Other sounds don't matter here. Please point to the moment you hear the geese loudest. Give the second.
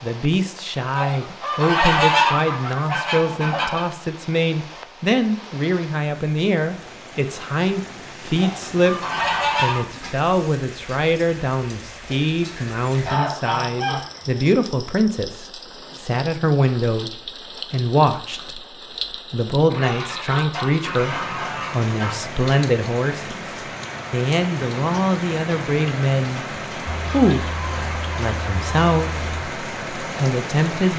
2 s.